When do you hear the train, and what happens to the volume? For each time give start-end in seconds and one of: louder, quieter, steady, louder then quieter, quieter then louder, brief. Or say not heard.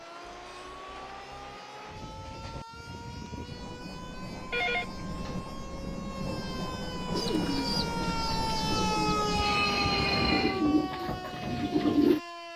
0.0-10.7 louder.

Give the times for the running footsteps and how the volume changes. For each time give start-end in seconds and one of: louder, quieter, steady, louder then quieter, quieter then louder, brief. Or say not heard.
not heard.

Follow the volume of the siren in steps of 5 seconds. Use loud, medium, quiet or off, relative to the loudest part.
quiet, loud, loud.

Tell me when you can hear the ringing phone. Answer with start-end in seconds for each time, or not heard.
4.5-5.5.